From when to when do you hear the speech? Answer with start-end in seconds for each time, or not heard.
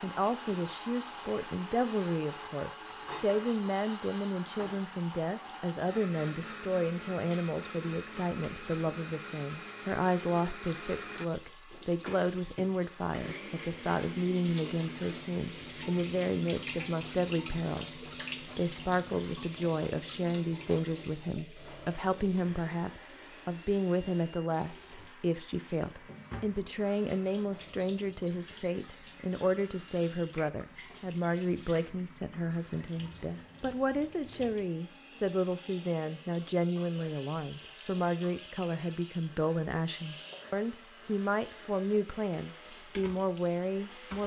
0.0-44.2.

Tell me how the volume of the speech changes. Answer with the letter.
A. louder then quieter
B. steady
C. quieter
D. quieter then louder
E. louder
B.